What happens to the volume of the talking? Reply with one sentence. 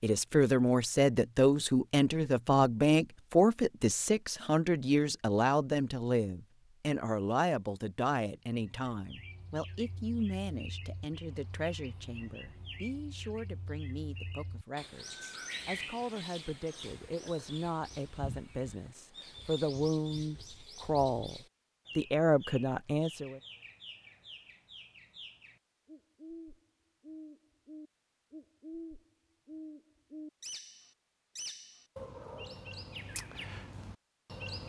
The volume of the talking goes down, then up.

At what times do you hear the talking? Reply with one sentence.
The talking can be heard from 0.0 to 23.4 s.